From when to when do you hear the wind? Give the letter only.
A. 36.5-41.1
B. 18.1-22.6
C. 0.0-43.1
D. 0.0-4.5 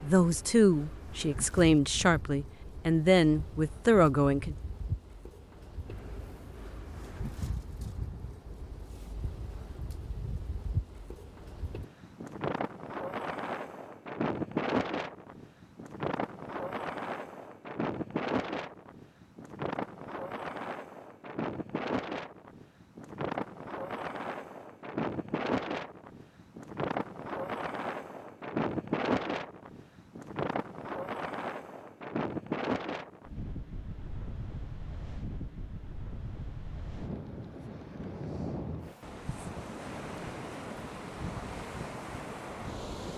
C.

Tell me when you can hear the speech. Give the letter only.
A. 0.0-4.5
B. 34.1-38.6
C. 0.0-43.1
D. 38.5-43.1
A.